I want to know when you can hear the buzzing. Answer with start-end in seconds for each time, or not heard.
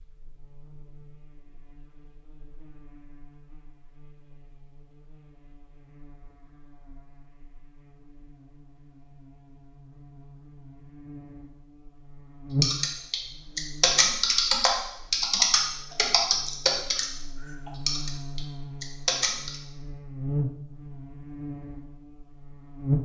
0.0-23.0.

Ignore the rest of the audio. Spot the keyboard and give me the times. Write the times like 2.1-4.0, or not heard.
12.6-19.6.